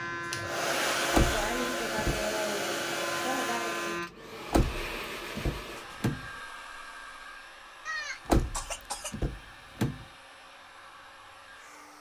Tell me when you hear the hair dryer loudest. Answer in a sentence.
The volume of the hair dryer peaks at 1 second.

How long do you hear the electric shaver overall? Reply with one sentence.
You can hear the electric shaver for 4 seconds altogether.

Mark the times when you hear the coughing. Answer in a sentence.
The coughing can be heard from 7.8 to 9.2 s.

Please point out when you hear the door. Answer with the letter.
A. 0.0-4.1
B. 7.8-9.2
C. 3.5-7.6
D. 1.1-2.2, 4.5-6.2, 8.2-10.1
D.